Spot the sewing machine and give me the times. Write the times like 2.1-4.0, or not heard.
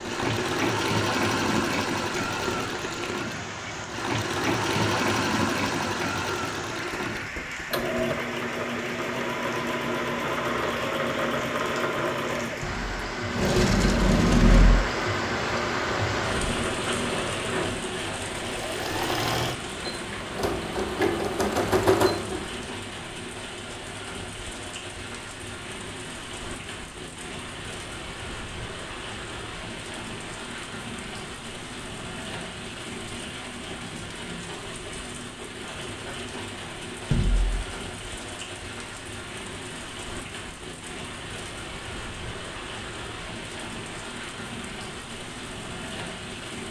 0.0-22.7.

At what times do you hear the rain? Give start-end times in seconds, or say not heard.
0.0-46.6.